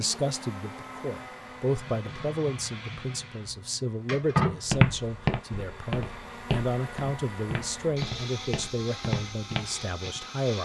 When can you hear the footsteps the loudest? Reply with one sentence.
The loudest moment of the footsteps is at 5 seconds.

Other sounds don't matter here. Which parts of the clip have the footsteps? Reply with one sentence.
The footsteps can be heard from 4.7 to 10.2 s.